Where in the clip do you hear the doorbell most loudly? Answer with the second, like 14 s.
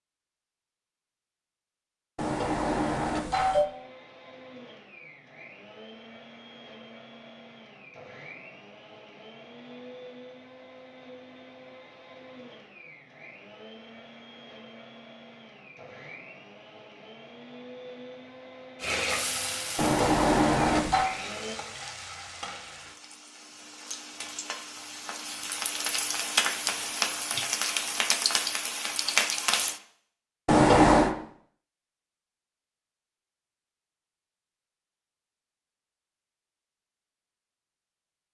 31 s.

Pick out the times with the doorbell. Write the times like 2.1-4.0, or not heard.
2.1-3.6, 19.8-21.1, 30.4-31.1.